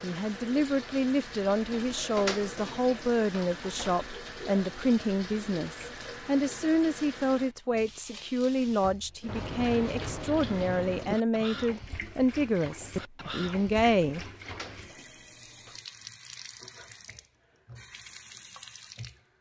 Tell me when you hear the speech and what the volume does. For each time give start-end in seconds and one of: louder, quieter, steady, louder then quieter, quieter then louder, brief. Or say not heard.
0.0-14.2 steady.